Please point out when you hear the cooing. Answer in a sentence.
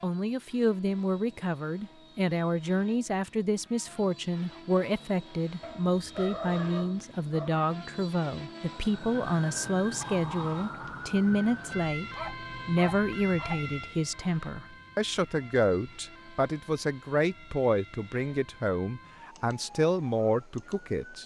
The cooing can't be heard in this clip.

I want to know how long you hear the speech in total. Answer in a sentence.
The speech can be heard for 21 seconds in total.